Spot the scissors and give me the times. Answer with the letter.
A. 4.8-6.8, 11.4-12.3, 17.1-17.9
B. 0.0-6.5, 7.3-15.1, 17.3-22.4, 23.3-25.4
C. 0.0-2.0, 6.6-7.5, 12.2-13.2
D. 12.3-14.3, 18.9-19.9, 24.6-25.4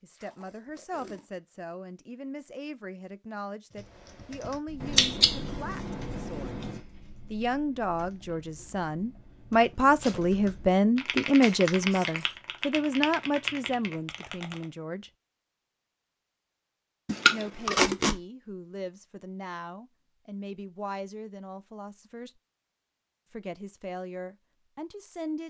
A.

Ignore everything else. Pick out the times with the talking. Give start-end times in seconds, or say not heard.
0.0-6.5, 7.3-15.1, 17.3-22.4, 23.3-25.4.